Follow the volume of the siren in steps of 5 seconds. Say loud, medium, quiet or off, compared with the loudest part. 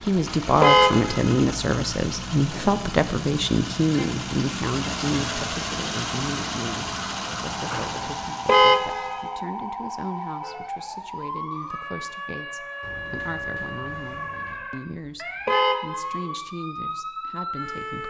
off, loud, loud, loud.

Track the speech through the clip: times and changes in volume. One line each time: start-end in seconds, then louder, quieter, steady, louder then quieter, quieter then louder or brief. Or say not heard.
0.0-18.0 quieter.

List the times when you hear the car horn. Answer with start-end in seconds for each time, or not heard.
0.6-1.4, 8.4-9.3, 15.4-16.3.